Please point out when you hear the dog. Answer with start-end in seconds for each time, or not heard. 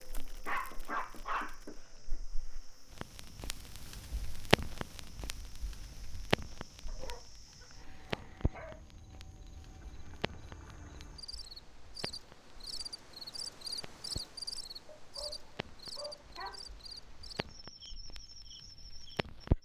0.5-2.2, 6.8-8.8, 14.8-16.6.